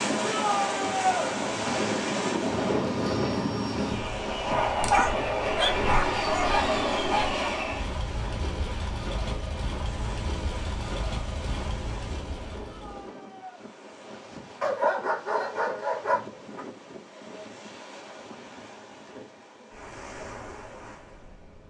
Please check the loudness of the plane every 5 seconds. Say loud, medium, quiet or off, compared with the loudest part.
loud, loud, medium, off, off.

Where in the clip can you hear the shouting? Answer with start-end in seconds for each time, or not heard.
0.2-1.3, 12.6-13.6.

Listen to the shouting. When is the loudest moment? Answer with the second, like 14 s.
1 s.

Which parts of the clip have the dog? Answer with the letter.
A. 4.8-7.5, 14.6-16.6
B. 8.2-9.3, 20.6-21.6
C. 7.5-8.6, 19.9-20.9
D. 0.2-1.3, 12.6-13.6
A.